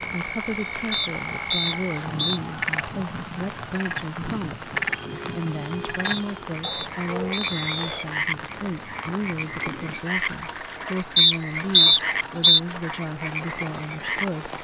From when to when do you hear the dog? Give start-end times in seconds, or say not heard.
6.6-8.2.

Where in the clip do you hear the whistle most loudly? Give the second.
12 s.